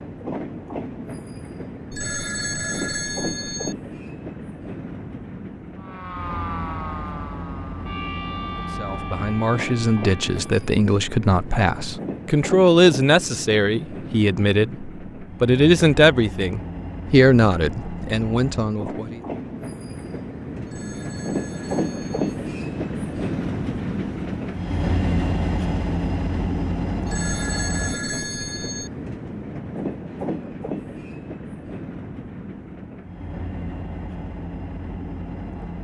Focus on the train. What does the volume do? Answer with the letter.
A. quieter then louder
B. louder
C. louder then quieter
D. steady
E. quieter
C.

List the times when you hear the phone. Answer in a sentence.
You can hear the phone from 1.9 to 3.8 s, from 20.6 to 22.4 s and from 27.1 to 28.9 s.